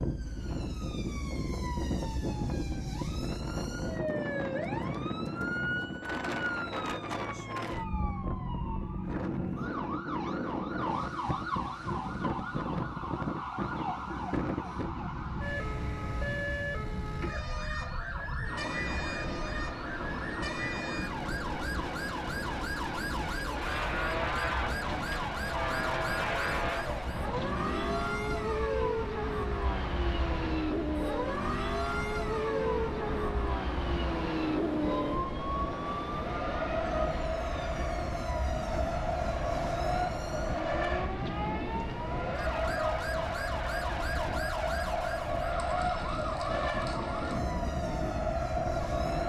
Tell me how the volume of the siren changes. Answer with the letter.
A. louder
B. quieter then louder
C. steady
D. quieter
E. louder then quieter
C.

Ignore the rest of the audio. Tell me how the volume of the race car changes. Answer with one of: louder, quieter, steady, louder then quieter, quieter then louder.
steady.